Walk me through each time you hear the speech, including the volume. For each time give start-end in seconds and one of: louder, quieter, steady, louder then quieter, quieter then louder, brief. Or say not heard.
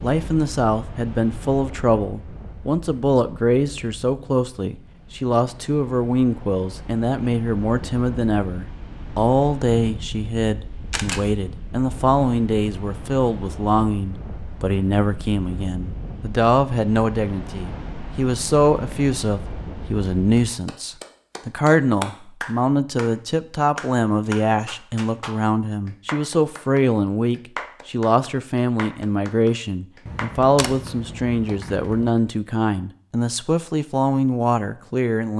0.0-35.3 steady.